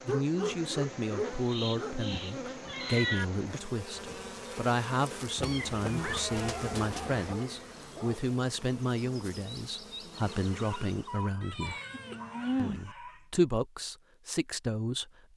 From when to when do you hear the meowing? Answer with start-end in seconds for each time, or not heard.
1.2-3.2, 5.3-7.3, 11.4-12.9.